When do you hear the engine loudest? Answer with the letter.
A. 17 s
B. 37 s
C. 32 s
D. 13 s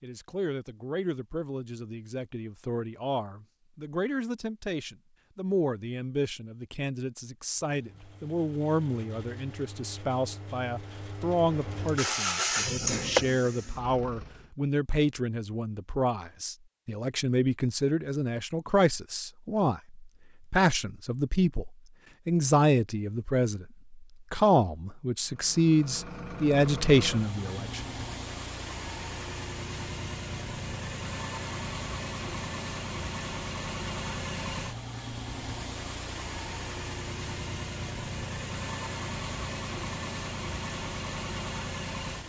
D.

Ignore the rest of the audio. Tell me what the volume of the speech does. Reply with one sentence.
The loudness of the speech goes up.